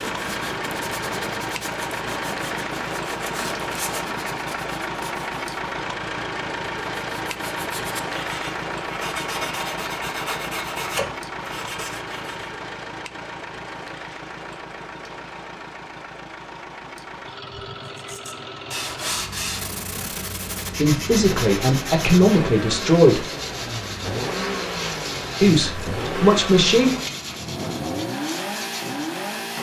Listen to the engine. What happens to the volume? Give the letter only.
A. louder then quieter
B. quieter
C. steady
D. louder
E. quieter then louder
E.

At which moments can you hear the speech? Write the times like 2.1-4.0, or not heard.
20.8-23.2, 25.4-26.9.